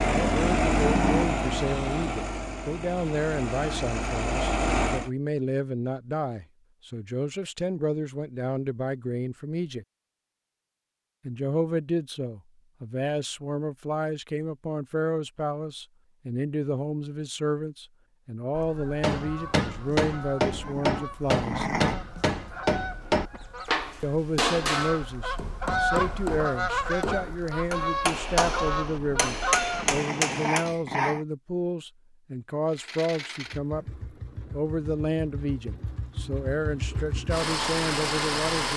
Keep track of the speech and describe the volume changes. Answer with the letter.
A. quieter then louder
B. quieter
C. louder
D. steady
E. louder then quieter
D.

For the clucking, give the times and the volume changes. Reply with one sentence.
The clucking can be heard from 18.5 to 29.9 s, getting louder.